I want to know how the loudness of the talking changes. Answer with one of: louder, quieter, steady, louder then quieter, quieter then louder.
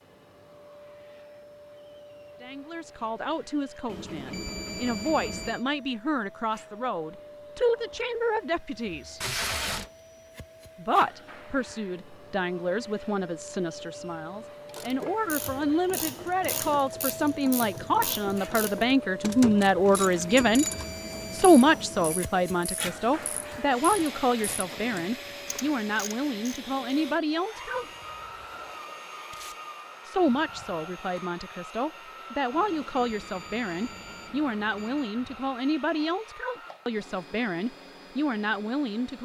louder then quieter.